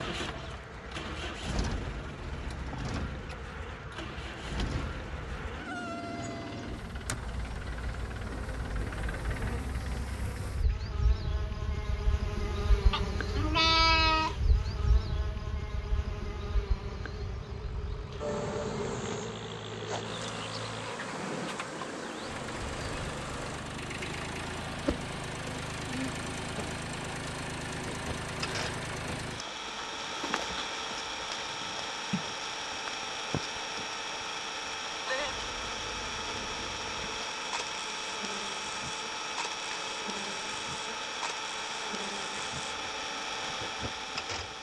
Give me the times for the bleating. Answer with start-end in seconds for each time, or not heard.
12.9-14.3.